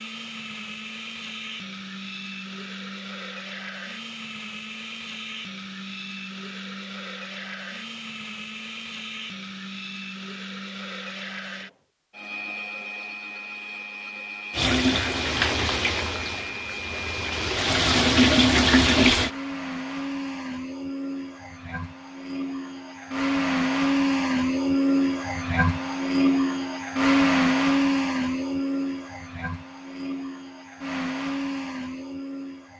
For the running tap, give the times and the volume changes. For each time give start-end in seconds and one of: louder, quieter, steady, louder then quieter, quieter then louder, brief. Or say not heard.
14.5-19.3 quieter then louder.